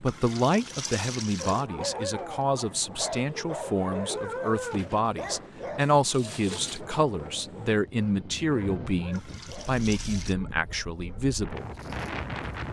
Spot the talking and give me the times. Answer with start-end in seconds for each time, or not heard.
0.0-11.7.